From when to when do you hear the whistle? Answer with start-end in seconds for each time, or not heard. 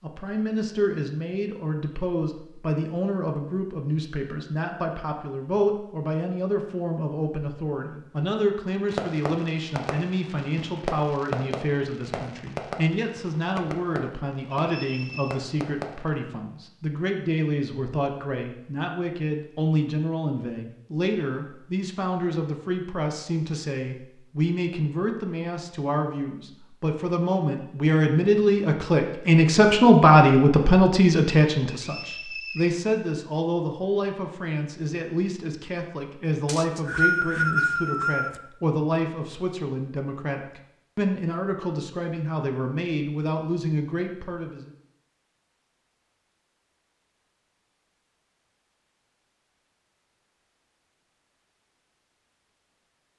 14.7-15.3, 31.7-32.8, 36.5-38.4.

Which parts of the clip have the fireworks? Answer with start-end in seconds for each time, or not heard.
8.9-16.1.